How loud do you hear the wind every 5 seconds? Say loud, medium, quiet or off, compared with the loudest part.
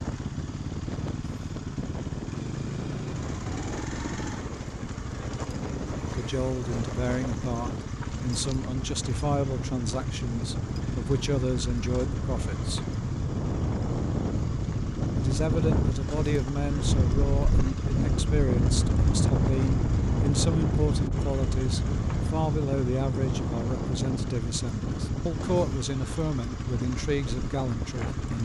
medium, medium, medium, loud, loud, medium.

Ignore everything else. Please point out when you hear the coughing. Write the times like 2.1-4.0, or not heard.
not heard.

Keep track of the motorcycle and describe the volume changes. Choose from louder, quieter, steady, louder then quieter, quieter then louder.
steady.